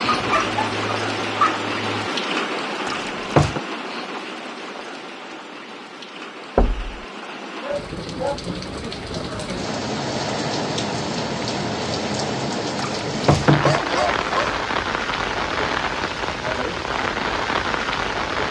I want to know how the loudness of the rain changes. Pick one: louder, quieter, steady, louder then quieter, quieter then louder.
quieter then louder.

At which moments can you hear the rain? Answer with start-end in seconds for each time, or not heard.
0.0-18.4.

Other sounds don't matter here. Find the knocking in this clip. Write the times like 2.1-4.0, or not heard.
2.9-3.6, 6.5-7.0, 12.8-13.8.